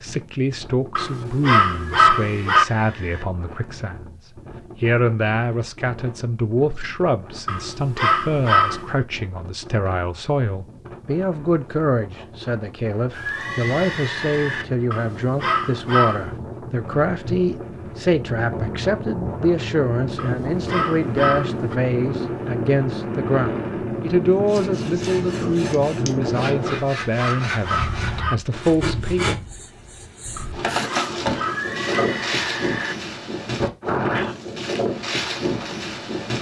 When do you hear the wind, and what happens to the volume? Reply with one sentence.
You can hear the wind from 0.0 to 36.3 s, getting louder.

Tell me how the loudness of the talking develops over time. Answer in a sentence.
The loudness of the talking stays about the same.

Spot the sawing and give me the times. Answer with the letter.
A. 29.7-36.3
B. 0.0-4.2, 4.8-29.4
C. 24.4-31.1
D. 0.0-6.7
C.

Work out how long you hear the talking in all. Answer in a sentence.
The talking can be heard for 29 seconds in total.